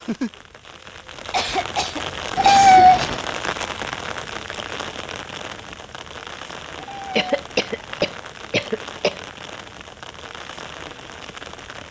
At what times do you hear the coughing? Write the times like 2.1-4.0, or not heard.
1.3-3.1, 7.2-9.2.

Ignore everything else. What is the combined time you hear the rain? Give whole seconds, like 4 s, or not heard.
12 s.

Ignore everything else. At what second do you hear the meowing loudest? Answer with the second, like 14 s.
3 s.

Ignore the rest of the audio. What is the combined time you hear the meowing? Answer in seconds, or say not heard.
2 s.